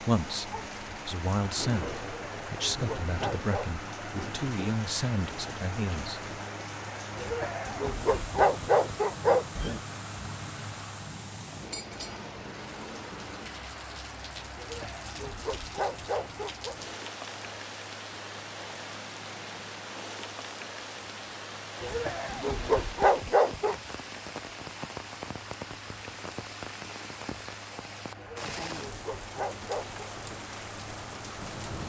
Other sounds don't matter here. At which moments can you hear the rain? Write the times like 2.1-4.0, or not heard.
0.0-31.8.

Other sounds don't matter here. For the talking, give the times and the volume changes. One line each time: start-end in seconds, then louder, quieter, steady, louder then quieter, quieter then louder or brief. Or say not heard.
0.0-6.2 steady.